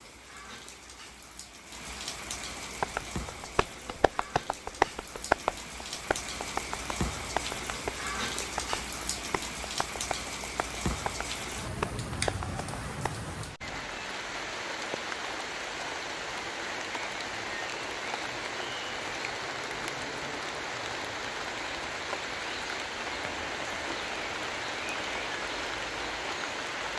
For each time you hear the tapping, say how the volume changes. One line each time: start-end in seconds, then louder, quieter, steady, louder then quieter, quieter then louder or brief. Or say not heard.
2.8-13.1 quieter then louder.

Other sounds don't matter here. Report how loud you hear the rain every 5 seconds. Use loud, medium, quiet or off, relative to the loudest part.
medium, loud, loud, loud, loud, loud.